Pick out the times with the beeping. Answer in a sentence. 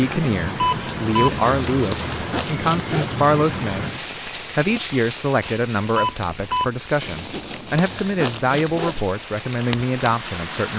The beeping can be heard from 0.6 to 1.4 s and from 6.0 to 6.7 s.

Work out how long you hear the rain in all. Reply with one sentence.
The rain can be heard for 11 seconds in total.